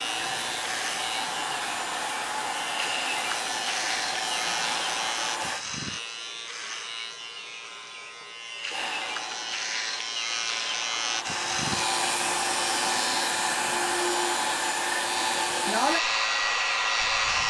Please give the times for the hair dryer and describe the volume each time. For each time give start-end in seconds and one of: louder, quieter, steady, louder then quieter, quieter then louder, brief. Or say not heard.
0.0-5.7 steady
8.7-17.4 louder.